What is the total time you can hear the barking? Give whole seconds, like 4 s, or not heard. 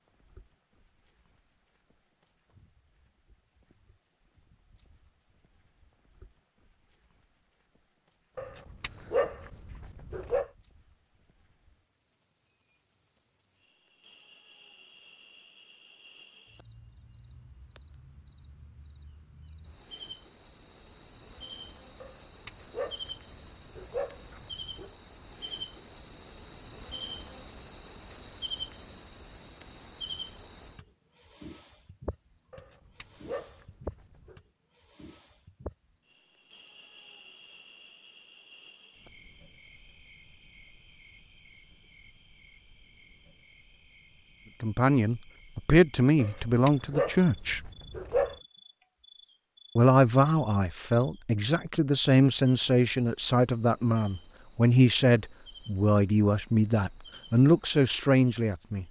9 s.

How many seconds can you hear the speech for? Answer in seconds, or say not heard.
12 s.